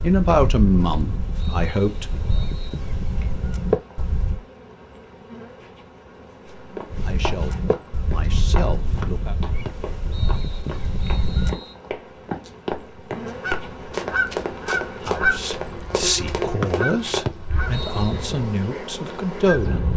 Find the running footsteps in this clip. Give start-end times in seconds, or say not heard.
6.5-17.2.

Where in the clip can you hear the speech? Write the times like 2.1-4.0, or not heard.
0.0-2.2, 6.7-9.3, 15.0-19.9.